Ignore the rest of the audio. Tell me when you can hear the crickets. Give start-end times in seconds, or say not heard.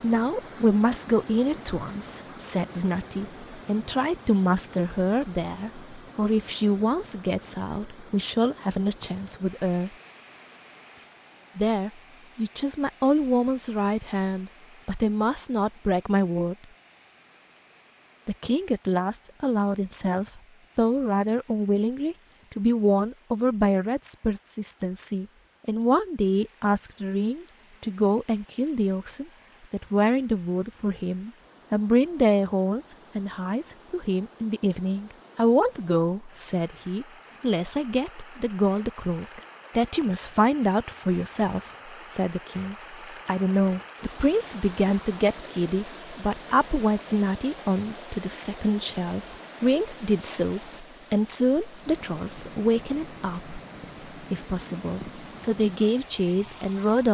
not heard.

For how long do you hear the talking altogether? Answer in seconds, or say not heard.
54 s.